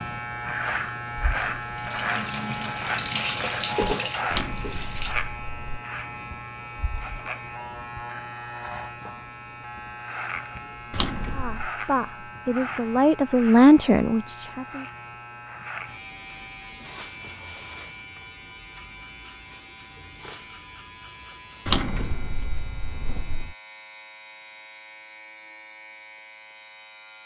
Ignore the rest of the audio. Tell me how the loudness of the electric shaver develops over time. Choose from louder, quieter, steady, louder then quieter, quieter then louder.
quieter.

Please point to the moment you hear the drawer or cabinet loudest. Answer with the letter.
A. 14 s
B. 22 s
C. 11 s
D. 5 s
B.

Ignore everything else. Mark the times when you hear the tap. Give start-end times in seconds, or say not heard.
1.8-5.2.